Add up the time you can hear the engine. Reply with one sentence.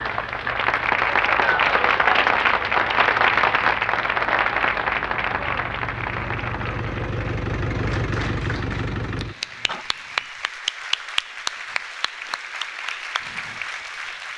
The engine can be heard for 10 seconds in total.